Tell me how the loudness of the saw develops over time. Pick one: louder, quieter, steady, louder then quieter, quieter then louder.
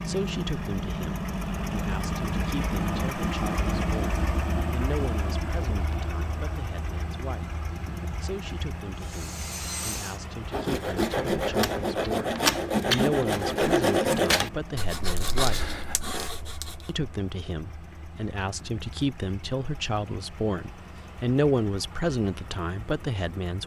louder then quieter.